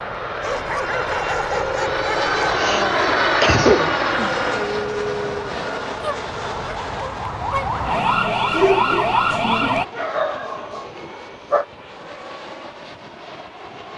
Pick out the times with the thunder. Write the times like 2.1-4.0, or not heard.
not heard.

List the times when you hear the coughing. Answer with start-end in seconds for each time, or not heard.
2.5-4.3.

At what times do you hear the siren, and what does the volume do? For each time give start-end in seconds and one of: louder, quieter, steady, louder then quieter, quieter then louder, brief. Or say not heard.
0.0-9.8 louder.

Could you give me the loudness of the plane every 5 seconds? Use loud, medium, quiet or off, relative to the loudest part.
loud, medium, quiet.